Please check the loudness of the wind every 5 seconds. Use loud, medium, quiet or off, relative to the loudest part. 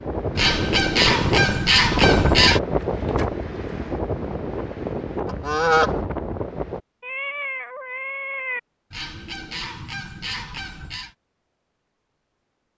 loud, medium, off.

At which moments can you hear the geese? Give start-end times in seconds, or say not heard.
0.3-2.6, 5.2-6.0, 8.9-11.1.